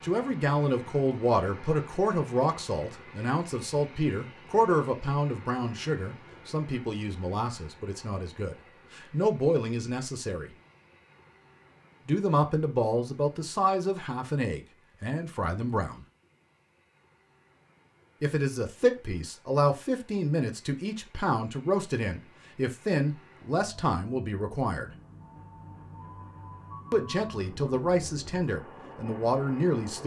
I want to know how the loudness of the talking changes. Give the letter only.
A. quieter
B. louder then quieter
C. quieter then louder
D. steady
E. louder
D.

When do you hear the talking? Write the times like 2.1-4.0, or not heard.
0.0-10.5, 12.1-16.1, 18.2-24.9, 26.9-30.0.